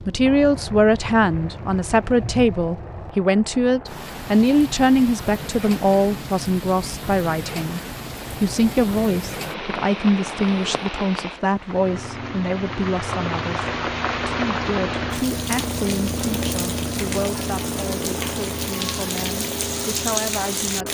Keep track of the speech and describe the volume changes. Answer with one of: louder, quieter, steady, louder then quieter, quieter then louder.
quieter.